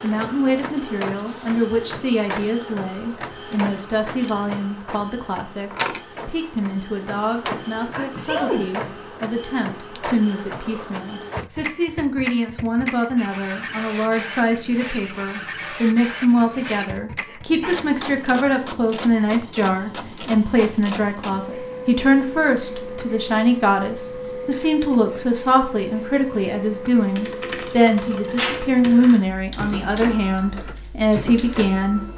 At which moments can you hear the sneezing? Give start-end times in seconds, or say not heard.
7.5-8.7, 17.2-17.9, 28.2-29.2.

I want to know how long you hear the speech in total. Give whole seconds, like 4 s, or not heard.
32 s.